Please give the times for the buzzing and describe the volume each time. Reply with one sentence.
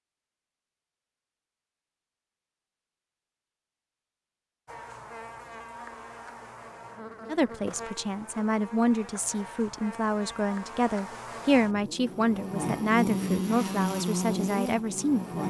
The buzzing can be heard from 4.7 to 15.4 s, getting louder.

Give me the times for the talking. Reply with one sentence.
The talking can be heard from 7.2 to 15.4 s.